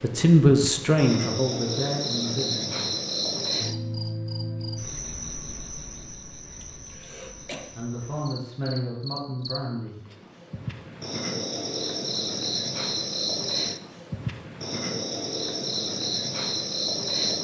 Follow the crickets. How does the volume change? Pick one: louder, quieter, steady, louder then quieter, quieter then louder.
quieter then louder.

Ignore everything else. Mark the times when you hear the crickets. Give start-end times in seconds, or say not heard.
0.0-17.3.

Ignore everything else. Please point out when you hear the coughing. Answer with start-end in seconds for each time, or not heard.
6.6-7.7.